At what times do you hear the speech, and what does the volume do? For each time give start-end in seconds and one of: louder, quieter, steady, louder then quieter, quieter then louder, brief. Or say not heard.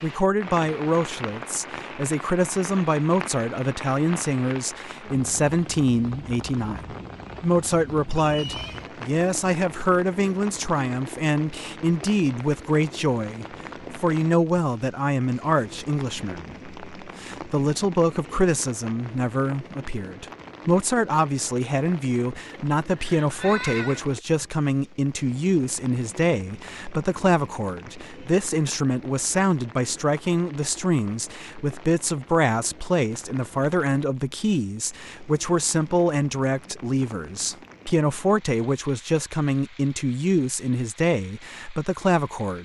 0.0-42.6 steady.